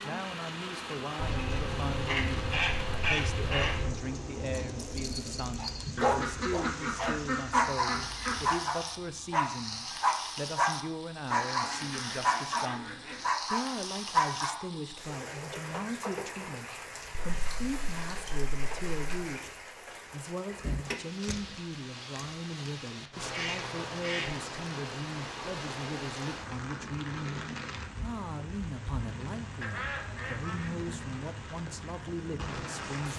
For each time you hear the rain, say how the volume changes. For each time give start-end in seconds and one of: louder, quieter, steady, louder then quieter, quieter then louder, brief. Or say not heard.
0.0-33.1 steady.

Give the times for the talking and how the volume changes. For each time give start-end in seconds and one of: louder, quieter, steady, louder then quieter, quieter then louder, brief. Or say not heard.
0.0-33.1 steady.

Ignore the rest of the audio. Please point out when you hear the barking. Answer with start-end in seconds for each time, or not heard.
4.5-14.7.